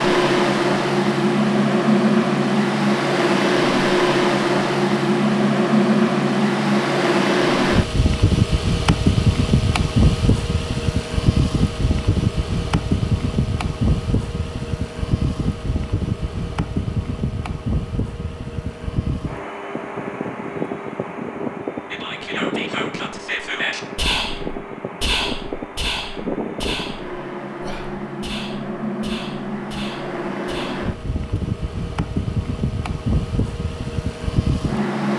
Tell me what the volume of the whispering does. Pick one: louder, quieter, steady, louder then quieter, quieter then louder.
quieter.